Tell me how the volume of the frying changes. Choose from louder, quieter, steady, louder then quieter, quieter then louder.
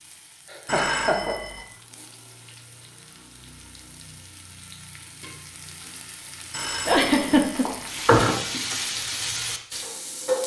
louder.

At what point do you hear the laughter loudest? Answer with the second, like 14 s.
7 s.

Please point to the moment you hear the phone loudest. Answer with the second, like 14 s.
8 s.